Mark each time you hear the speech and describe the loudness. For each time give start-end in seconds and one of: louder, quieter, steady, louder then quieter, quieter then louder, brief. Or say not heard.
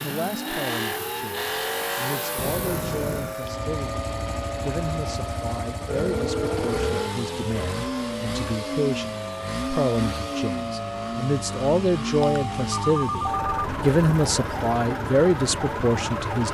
0.0-16.4 louder.